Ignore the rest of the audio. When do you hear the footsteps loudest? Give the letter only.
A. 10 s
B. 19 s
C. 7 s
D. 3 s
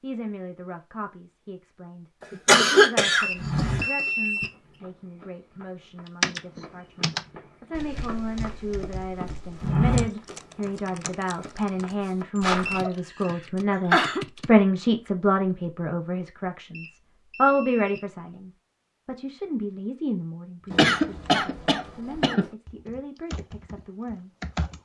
A.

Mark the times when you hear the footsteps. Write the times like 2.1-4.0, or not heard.
3.4-12.8.